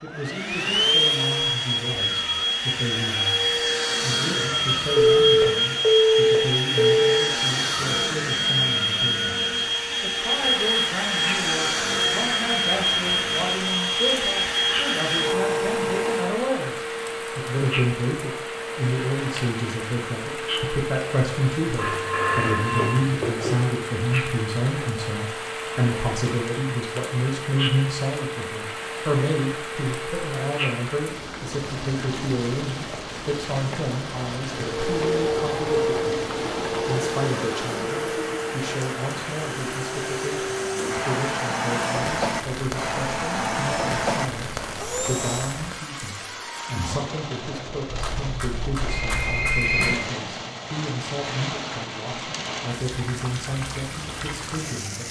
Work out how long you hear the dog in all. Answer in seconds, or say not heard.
not heard.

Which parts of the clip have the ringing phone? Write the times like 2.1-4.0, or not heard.
5.0-7.0, 21.8-23.6, 47.9-49.9.